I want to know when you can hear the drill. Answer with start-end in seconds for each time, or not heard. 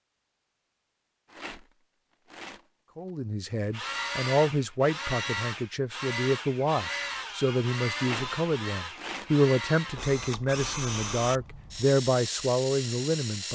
3.7-13.4.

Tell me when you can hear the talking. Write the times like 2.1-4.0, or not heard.
3.0-13.4.